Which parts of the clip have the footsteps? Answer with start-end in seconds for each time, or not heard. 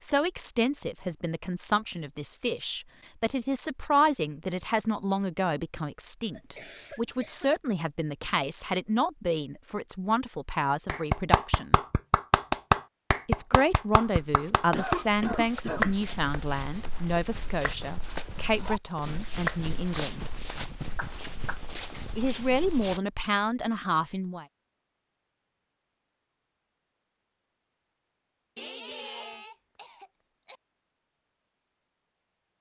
14.2-23.0.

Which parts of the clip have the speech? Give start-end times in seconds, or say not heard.
0.0-11.8, 13.2-20.3, 22.1-24.4.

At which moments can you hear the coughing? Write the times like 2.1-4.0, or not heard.
6.3-7.5, 14.7-15.9, 28.6-30.6.